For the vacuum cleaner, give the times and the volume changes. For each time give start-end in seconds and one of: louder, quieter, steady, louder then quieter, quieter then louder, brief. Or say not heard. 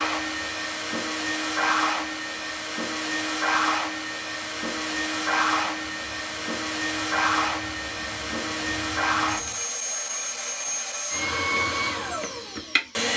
0.0-13.1 steady.